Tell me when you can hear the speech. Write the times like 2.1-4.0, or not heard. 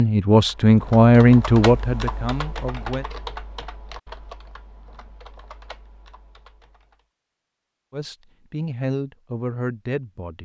0.0-3.0, 7.9-10.3.